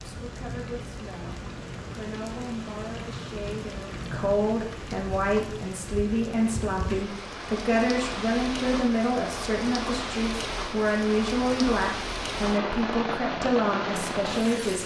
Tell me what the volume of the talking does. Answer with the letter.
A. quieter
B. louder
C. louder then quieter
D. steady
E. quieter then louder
B.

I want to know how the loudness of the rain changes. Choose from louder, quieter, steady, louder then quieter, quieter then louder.
louder.